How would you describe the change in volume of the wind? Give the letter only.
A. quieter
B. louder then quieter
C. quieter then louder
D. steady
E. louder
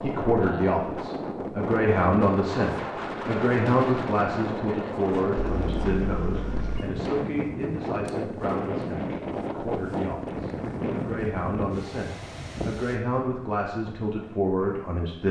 A.